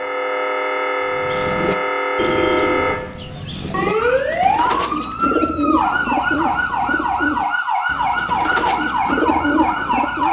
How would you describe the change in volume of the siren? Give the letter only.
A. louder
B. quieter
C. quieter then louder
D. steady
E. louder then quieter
D.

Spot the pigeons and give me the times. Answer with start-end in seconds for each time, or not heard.
1.1-10.2.